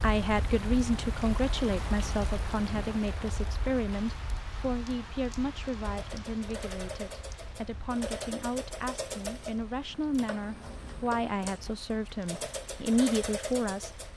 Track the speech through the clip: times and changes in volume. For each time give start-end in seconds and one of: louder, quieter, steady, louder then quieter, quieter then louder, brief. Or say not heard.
0.0-13.9 quieter then louder.